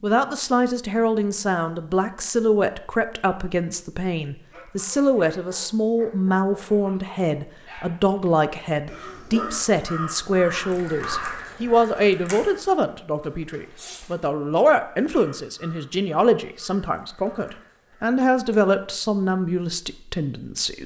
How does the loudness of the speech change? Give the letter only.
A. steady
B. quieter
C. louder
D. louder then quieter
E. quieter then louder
A.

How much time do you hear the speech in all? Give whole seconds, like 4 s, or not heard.
21 s.